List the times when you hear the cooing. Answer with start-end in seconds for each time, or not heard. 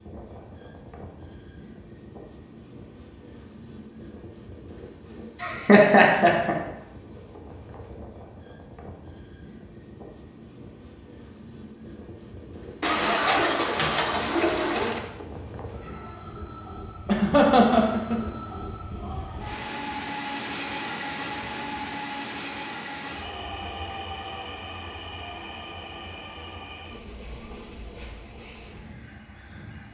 12.8-15.0.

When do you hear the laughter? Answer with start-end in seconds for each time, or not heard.
5.4-6.5, 17.1-18.1.